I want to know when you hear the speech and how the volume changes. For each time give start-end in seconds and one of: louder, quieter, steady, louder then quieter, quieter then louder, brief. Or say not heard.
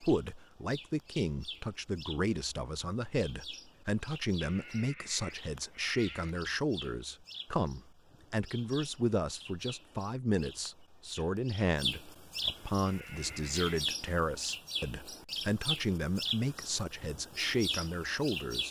0.0-18.6 steady.